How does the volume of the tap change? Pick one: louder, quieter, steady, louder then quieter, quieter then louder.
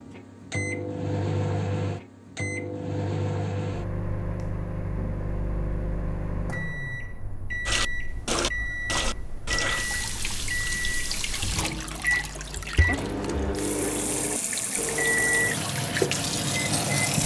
quieter then louder.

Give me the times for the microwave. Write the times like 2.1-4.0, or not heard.
0.0-17.2.